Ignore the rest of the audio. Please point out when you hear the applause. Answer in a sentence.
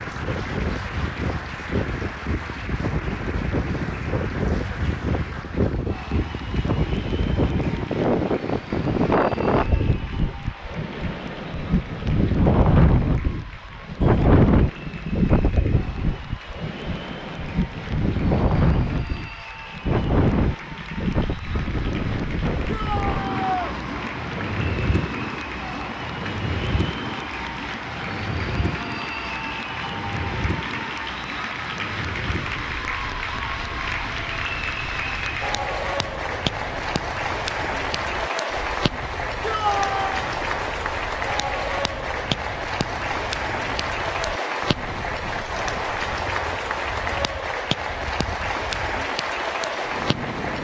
The applause can be heard from 0.0 to 50.5 s.